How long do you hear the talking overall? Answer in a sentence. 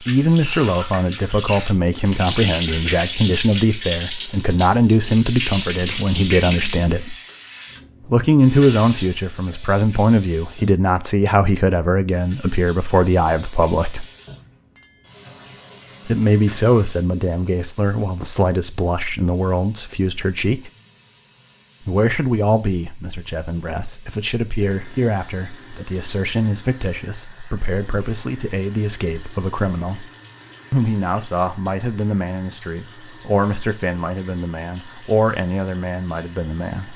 You can hear the talking for 32 seconds altogether.